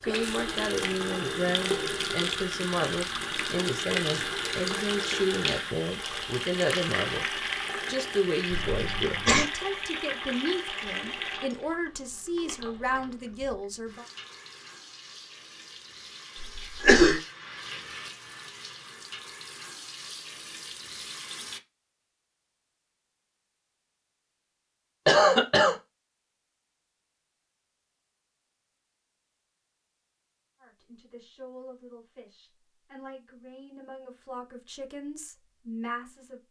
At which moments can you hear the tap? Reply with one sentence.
The tap can be heard from 0.0 to 21.6 s.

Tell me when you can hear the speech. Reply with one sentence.
The speech can be heard from 0.1 to 14.1 s and from 30.6 to 36.4 s.